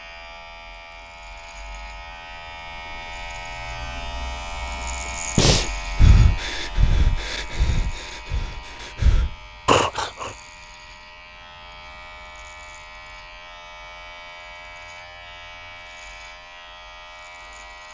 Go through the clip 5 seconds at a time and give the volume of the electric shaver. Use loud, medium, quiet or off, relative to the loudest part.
loud, loud, medium, medium.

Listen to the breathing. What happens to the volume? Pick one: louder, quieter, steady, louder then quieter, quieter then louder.
quieter then louder.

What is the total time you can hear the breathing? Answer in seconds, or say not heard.
5 s.